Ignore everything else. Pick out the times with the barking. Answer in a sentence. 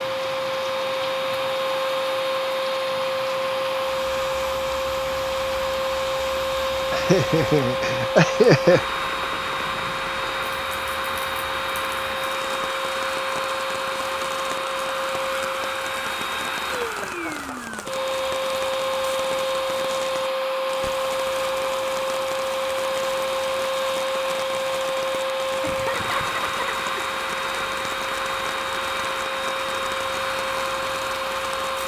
The barking can't be heard in this clip.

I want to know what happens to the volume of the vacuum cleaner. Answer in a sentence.
The volume of the vacuum cleaner stays about the same.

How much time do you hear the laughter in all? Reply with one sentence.
The laughter can be heard for 4 seconds in total.